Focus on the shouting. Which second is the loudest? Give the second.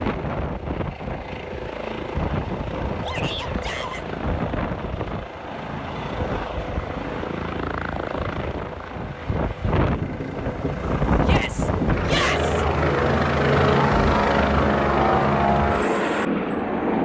12 s.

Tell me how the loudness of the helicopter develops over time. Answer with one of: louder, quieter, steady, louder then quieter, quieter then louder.
louder.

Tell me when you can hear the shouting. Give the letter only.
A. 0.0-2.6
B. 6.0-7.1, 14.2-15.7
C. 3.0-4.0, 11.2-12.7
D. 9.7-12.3
C.